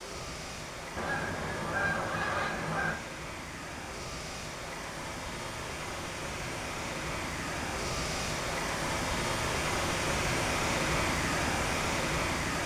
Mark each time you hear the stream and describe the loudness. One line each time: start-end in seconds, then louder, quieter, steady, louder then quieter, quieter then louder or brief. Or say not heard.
0.0-12.6 louder.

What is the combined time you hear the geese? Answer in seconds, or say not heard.
2 s.